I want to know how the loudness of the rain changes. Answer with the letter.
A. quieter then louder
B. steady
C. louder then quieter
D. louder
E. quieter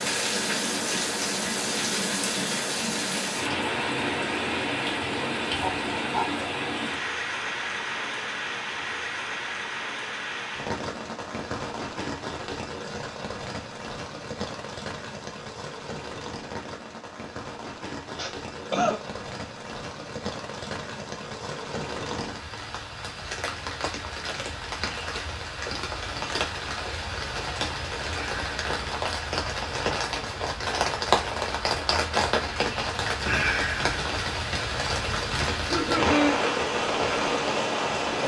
A.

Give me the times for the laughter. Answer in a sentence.
The laughter can be heard from 5.6 to 6.3 s, from 18.1 to 19.0 s and from 35.5 to 36.4 s.